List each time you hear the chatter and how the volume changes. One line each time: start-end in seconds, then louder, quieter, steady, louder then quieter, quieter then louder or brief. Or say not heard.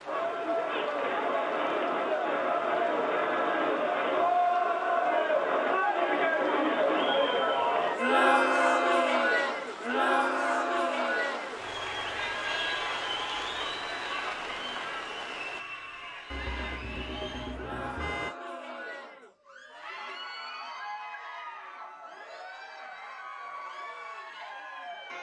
0.0-25.1 quieter.